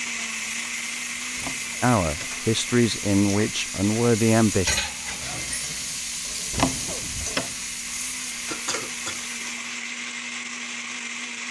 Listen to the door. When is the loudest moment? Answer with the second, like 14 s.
7 s.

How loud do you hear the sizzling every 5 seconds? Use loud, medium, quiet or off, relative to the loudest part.
loud, loud, off.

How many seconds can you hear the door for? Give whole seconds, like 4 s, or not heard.
2 s.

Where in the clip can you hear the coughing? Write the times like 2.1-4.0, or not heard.
8.5-9.6.